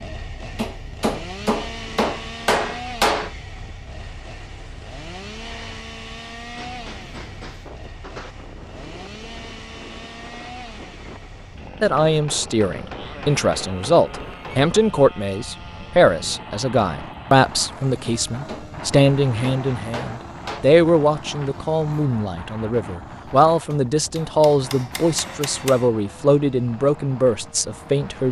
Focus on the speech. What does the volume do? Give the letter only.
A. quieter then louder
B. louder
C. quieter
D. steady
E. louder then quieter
D.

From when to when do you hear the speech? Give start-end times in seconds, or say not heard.
11.8-28.2.